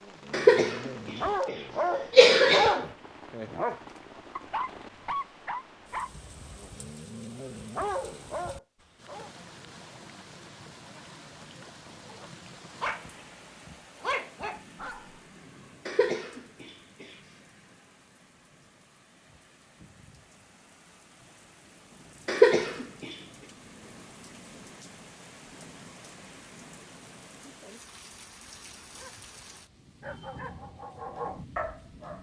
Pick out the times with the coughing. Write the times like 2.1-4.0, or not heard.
0.3-0.9, 1.9-2.9, 15.8-17.1, 22.2-23.1.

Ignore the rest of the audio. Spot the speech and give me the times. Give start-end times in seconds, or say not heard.
not heard.